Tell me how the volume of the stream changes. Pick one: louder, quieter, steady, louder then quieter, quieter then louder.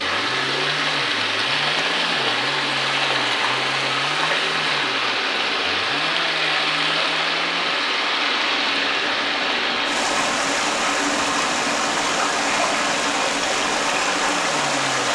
steady.